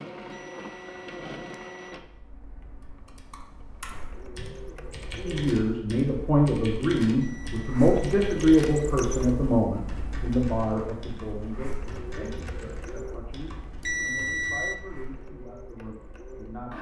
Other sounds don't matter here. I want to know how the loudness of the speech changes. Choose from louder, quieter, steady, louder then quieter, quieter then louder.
quieter.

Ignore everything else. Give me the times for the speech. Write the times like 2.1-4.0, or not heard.
5.2-16.7.